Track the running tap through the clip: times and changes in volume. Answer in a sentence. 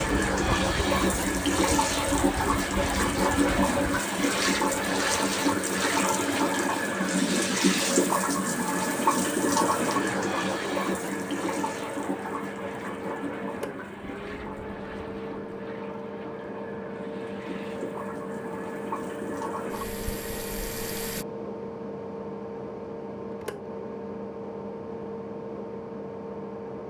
You can hear the running tap from 0.0 to 21.2 s, getting quieter.